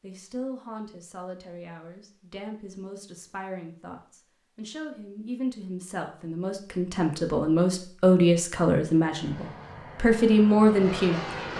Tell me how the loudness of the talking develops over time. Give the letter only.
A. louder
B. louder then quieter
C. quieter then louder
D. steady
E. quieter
A.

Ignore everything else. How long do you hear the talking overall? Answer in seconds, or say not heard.
11 s.